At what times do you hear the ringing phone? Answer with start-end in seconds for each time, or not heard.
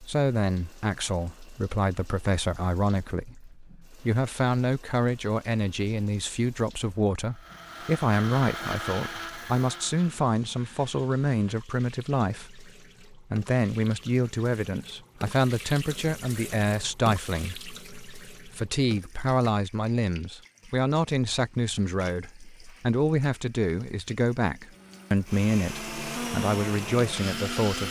not heard.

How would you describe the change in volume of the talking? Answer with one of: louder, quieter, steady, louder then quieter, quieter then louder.
steady.